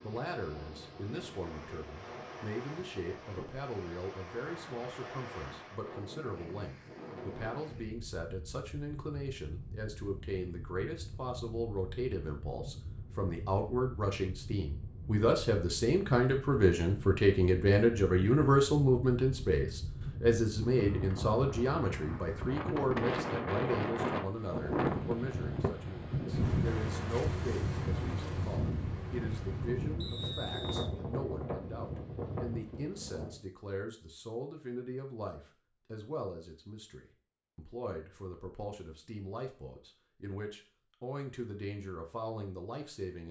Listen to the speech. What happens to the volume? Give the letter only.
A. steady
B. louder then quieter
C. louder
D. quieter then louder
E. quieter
B.